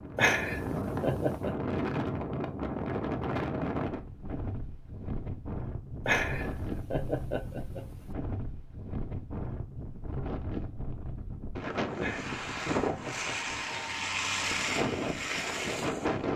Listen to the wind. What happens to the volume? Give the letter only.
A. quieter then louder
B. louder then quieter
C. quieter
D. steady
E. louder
A.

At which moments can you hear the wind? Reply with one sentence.
You can hear the wind from 0.0 to 16.3 s.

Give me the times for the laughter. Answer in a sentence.
You can hear the laughter from 0.1 to 1.6 s, from 6.0 to 8.1 s and from 12.0 to 13.8 s.